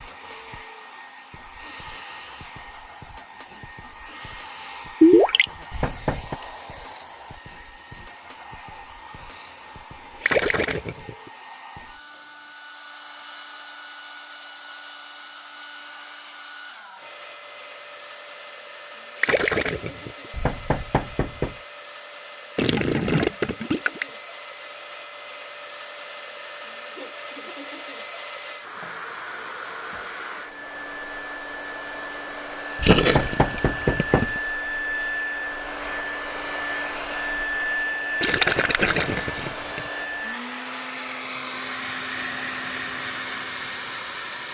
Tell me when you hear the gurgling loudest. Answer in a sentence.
The loudest moment of the gurgling is at 5 seconds.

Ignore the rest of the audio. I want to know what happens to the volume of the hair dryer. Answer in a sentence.
The volume of the hair dryer goes up.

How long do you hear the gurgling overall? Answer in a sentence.
You can hear the gurgling for 7 seconds altogether.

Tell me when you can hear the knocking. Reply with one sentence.
You can hear the knocking from 5.7 to 6.4 s, from 20.3 to 21.6 s and from 32.8 to 34.4 s.